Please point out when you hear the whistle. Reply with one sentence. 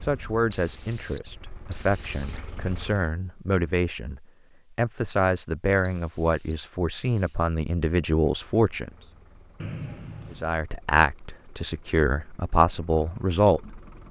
The whistle can be heard from 0.5 to 2.4 s, from 5.8 to 7.4 s and from 9.6 to 10.5 s.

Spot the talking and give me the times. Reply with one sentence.
You can hear the talking from 0.0 to 8.9 s and from 10.3 to 13.8 s.